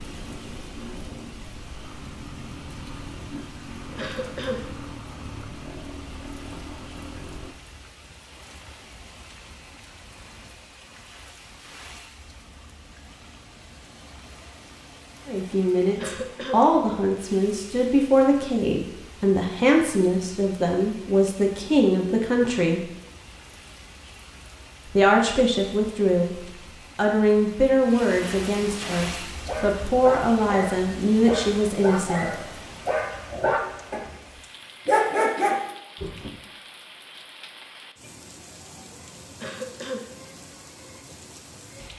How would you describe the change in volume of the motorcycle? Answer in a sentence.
The loudness of the motorcycle stays about the same.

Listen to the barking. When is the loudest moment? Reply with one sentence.
The volume of the barking peaks at 35 seconds.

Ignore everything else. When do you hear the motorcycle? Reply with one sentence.
You can hear the motorcycle from 0.0 to 7.5 s.